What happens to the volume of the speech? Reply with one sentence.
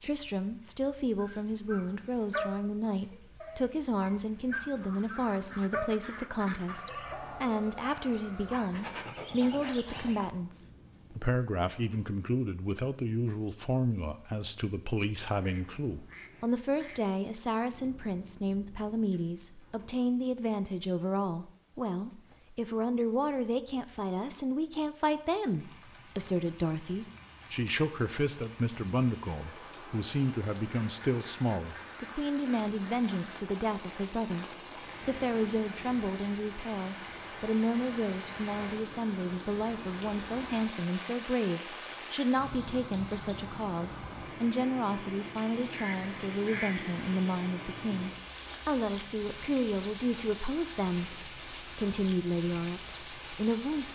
The volume of the speech stays about the same.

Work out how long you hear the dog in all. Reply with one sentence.
You can hear the dog for 9 seconds altogether.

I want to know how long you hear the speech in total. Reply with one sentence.
You can hear the speech for 54 seconds altogether.